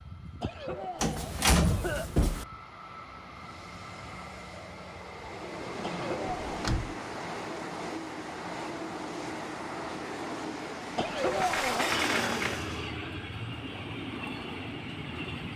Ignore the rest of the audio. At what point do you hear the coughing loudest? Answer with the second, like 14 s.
11 s.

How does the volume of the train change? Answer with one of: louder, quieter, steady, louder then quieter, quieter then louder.
louder.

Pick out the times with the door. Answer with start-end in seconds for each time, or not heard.
1.0-2.5, 6.5-7.0, 11.2-12.8.